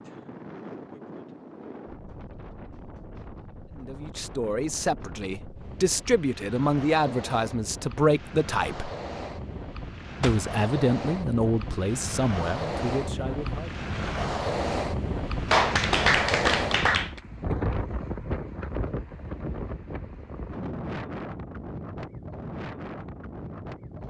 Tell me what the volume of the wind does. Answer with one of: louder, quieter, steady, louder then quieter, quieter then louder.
louder then quieter.